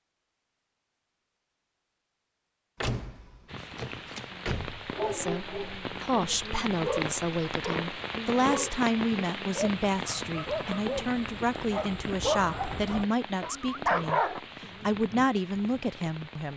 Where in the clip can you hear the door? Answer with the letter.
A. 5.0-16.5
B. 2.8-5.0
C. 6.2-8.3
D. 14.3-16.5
B.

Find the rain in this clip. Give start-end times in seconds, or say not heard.
3.5-16.5.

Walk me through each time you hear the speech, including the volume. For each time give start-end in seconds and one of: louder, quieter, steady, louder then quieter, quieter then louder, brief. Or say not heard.
5.0-16.5 steady.